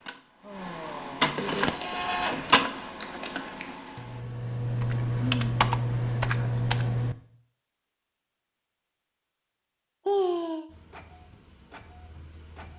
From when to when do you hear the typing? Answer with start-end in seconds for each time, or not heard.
1.6-7.2.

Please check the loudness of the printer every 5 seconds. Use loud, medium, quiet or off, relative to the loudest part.
loud, off, quiet.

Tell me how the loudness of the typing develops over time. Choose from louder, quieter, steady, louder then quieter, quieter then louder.
louder.